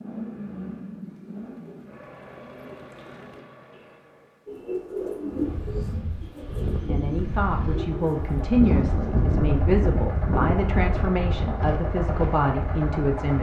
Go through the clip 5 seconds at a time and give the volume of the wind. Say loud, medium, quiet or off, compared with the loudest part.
off, loud, loud.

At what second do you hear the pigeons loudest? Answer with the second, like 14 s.
5 s.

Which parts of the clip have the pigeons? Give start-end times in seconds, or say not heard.
1.0-9.4.